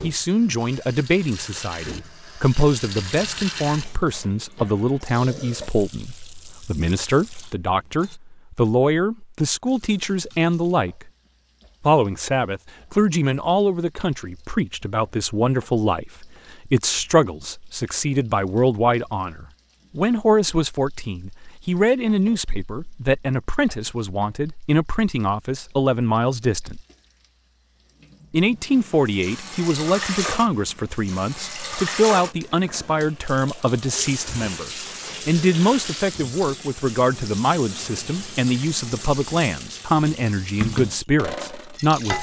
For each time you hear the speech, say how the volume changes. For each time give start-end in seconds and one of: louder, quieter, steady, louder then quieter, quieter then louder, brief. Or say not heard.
0.0-11.1 steady
11.8-26.8 steady
28.3-42.1 steady.